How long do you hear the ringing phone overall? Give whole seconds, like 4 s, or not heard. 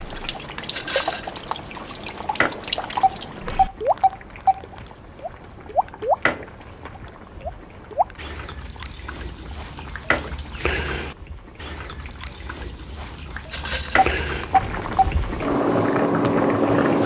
3 s.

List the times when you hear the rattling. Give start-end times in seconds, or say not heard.
0.7-1.3, 13.5-14.1.